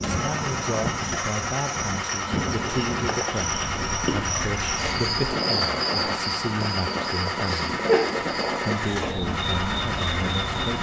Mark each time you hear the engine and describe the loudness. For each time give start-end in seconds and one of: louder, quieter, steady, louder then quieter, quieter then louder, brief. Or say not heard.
0.0-10.7 steady.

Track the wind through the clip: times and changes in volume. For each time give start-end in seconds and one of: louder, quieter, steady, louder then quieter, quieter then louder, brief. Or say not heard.
0.0-10.7 steady.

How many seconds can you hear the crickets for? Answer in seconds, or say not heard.
11 s.